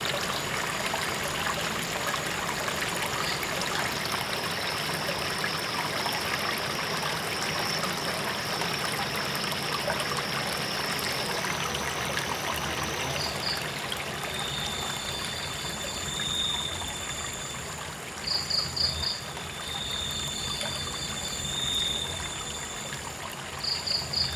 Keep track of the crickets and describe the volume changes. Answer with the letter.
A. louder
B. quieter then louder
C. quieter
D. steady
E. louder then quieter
A.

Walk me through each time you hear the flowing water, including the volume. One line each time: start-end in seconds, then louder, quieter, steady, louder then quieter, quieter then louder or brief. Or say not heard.
0.0-24.3 quieter.